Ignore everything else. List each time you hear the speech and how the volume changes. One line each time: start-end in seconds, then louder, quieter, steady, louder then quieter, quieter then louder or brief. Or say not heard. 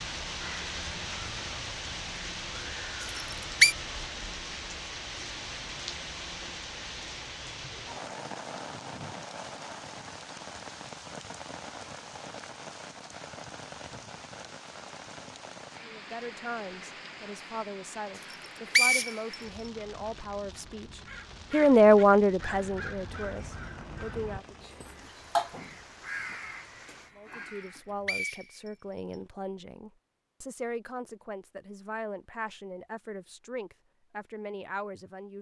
15.8-24.6 louder then quieter
27.1-35.3 steady.